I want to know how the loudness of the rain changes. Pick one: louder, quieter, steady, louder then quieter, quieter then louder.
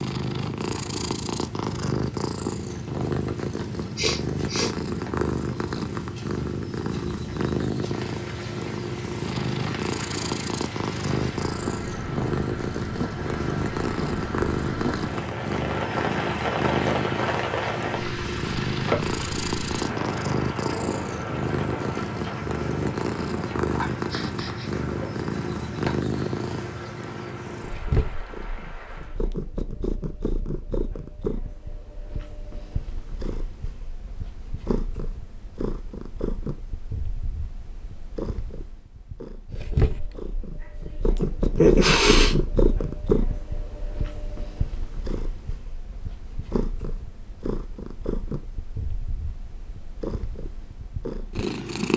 louder then quieter.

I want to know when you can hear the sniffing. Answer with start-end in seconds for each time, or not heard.
4.0-4.8, 23.9-24.9, 41.5-42.4.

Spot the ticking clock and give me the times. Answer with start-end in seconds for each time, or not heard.
not heard.